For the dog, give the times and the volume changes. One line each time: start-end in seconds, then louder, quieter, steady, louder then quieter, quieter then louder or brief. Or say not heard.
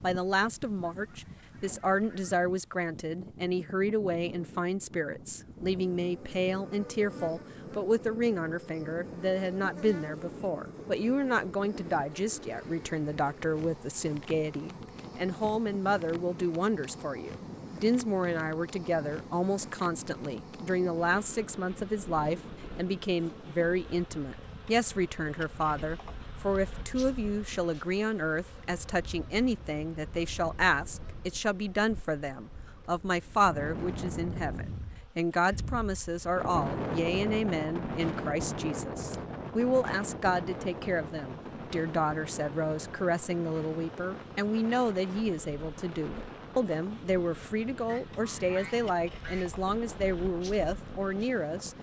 not heard.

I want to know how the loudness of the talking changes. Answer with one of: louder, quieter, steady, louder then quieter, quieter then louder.
steady.